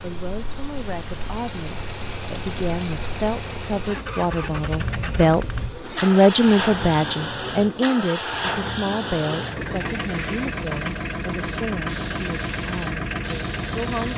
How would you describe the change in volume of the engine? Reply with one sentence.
The volume of the engine goes up.